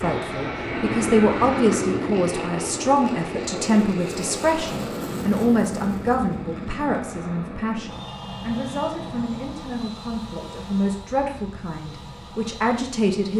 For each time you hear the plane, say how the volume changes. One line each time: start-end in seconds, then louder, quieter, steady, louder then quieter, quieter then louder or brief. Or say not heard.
0.0-13.3 quieter.